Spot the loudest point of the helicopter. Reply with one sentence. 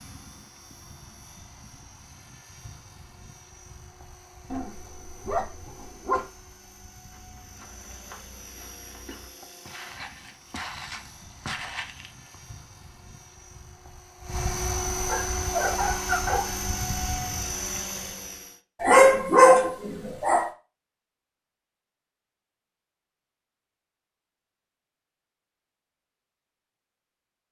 The volume of the helicopter peaks at 15 seconds.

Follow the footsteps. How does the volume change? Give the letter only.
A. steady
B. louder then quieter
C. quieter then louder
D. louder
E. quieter
D.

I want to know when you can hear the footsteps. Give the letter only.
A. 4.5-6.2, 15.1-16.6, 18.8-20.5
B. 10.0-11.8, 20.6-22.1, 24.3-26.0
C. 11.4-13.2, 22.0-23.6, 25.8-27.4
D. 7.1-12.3
D.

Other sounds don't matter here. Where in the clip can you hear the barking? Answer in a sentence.
The barking can be heard from 4.5 to 6.2 s, from 15.1 to 16.6 s and from 18.8 to 20.5 s.